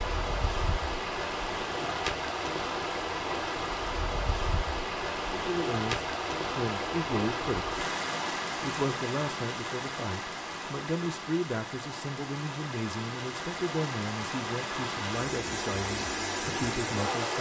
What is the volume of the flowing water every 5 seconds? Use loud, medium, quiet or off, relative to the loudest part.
loud, loud, medium, loud.